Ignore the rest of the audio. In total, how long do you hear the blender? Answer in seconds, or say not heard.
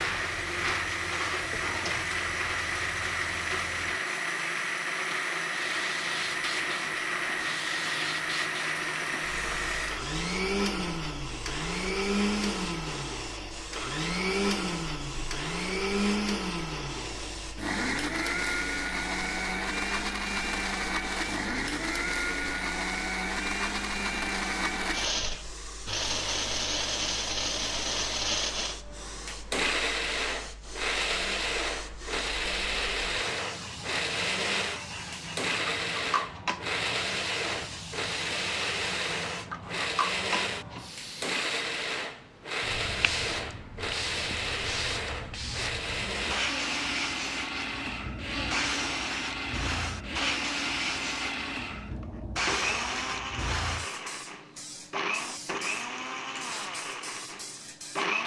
58 s.